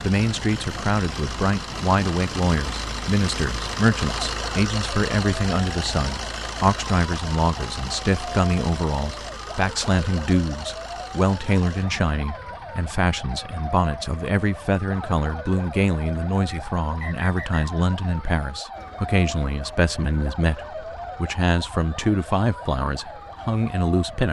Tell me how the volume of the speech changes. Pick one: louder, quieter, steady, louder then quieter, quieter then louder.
steady.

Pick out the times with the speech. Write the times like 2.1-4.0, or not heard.
0.0-24.2.